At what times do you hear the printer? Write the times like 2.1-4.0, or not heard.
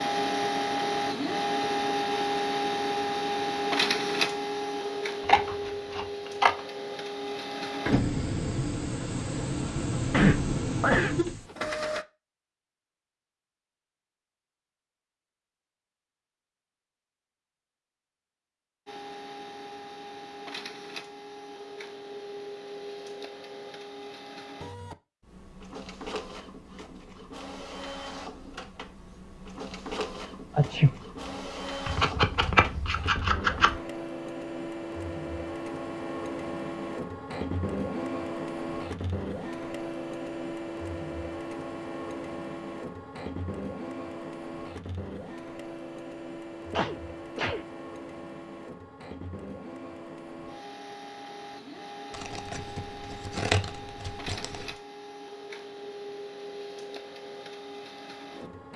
0.0-12.1, 18.9-58.7.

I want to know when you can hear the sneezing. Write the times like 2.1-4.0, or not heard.
10.1-11.6, 30.6-31.4, 46.7-47.6.